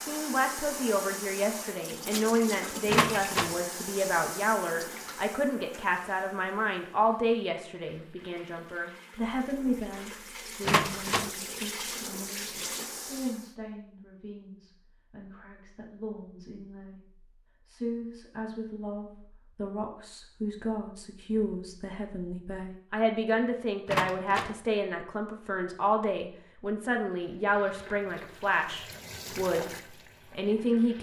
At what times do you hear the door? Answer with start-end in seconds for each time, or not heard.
2.9-3.5, 10.7-11.3, 23.9-24.6.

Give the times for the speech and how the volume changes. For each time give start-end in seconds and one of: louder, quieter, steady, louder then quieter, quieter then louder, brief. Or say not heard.
0.0-30.9 quieter then louder.